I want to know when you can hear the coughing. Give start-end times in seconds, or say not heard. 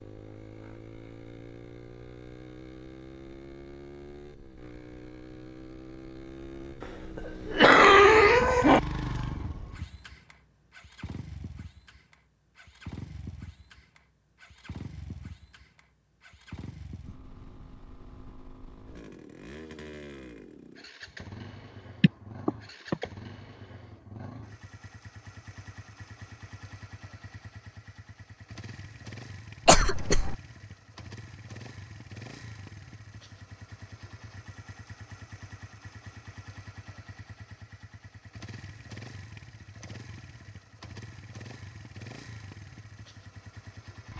6.8-8.8, 22.0-23.1, 29.6-30.4.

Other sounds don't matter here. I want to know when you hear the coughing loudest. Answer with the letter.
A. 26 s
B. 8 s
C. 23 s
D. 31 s
B.